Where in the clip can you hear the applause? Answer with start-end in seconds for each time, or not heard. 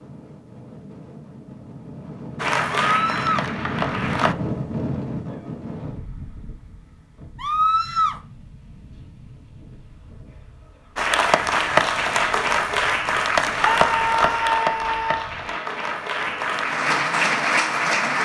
2.4-4.3, 10.9-18.1.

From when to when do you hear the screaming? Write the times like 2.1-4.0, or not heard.
2.9-3.5, 7.3-8.2, 13.6-15.3.